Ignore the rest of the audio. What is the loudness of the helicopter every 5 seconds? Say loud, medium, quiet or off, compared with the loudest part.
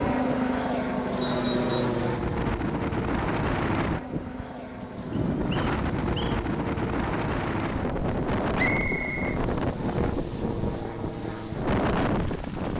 loud, medium, medium.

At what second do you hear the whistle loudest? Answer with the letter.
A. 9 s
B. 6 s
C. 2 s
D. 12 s
A.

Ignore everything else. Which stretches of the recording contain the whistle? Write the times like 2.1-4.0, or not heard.
1.2-1.9, 5.1-6.4, 8.6-10.1.